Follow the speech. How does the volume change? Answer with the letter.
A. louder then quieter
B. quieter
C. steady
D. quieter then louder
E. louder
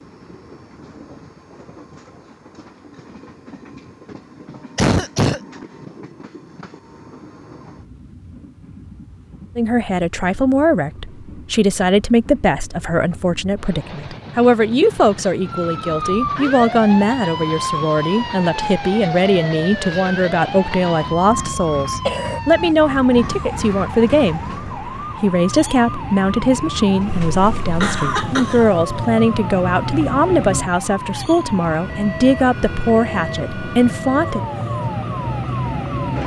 C.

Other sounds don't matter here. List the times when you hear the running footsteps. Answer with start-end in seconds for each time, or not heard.
not heard.